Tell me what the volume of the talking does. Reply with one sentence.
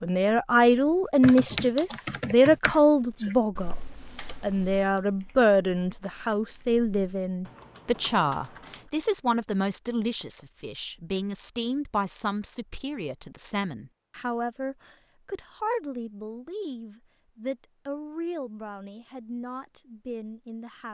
The volume of the talking goes down.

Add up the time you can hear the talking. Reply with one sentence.
You can hear the talking for 21 seconds altogether.